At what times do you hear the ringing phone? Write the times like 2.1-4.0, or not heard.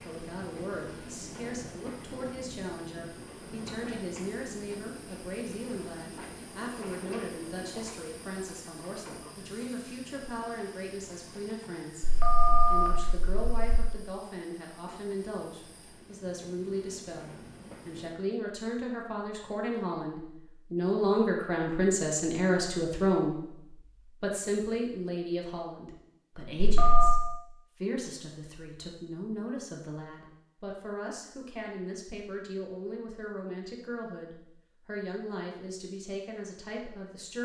12.0-13.9, 26.6-27.2.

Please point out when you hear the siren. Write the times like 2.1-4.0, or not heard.
not heard.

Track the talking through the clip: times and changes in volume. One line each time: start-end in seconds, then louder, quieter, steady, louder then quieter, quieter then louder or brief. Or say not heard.
0.1-37.4 louder then quieter.